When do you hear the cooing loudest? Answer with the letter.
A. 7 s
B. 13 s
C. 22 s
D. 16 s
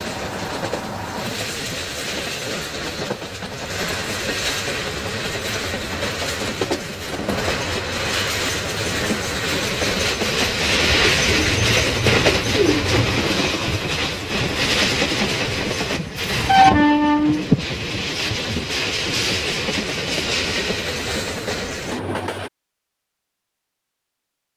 B.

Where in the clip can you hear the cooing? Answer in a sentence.
The cooing can be heard from 10.8 to 13.2 s.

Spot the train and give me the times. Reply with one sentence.
The train can be heard from 0.0 to 22.5 s.